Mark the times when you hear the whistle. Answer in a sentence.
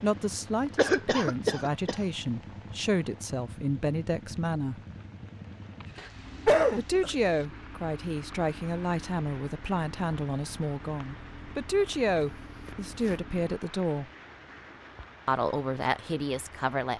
The whistle can't be heard in this clip.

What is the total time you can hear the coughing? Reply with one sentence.
The coughing can be heard for 3 seconds in total.